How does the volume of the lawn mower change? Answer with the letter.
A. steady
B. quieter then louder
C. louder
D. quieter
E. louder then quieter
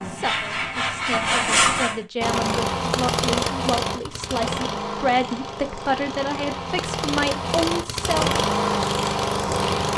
B.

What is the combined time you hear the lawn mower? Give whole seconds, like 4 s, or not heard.
8 s.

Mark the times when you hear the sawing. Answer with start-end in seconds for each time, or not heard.
0.0-2.0.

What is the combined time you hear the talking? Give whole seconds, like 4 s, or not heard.
9 s.